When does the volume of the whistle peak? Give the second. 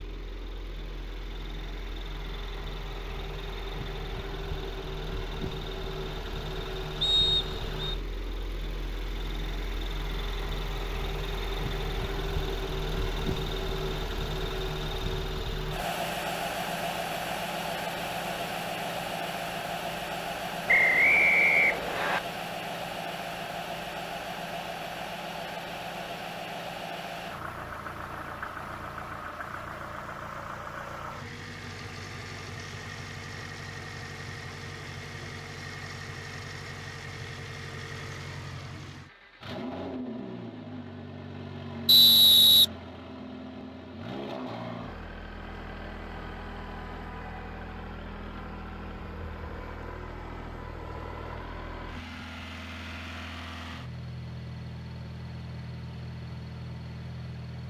42 s.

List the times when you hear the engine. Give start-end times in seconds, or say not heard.
0.0-57.6.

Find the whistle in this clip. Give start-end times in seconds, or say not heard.
7.0-8.0, 20.6-22.2, 41.9-42.6.